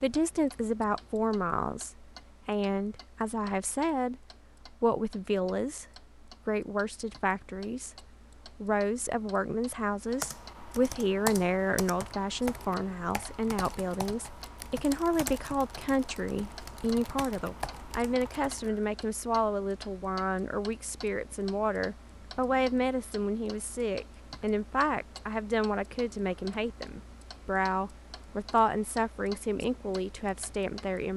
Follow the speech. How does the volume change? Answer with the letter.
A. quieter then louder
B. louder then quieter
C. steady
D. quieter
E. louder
C.